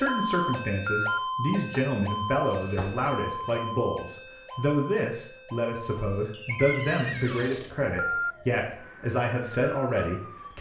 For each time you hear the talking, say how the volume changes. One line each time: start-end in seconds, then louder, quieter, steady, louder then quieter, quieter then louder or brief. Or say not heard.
0.0-10.5 steady.